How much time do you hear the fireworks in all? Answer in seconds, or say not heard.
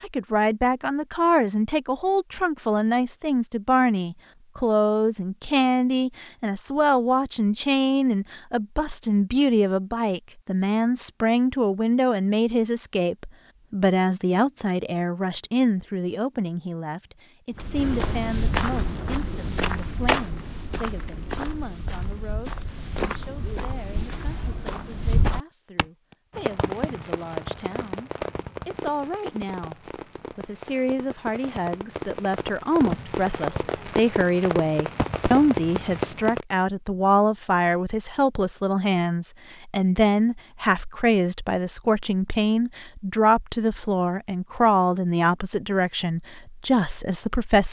10 s.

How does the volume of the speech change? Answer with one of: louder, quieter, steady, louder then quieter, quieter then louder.
quieter then louder.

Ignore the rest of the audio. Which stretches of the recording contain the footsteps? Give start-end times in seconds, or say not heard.
17.6-25.9.